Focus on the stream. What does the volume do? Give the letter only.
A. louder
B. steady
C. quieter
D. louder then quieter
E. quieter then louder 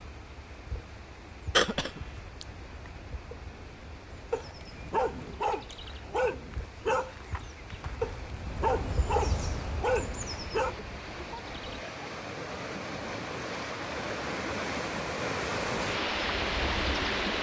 A.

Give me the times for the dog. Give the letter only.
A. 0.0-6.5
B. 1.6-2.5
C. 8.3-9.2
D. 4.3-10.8
D.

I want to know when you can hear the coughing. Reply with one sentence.
The coughing can be heard from 1.6 to 2.5 s.